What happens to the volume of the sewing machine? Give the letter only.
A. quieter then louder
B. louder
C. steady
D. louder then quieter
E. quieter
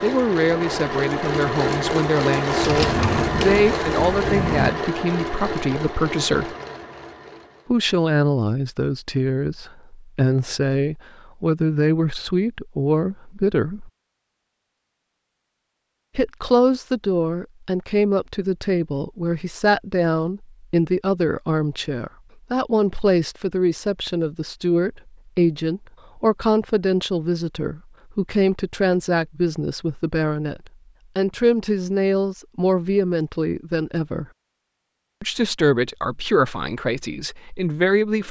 E.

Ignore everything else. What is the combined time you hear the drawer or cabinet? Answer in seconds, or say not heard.
2 s.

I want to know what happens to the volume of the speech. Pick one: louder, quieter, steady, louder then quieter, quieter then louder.
steady.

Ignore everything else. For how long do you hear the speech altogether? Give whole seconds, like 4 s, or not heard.
34 s.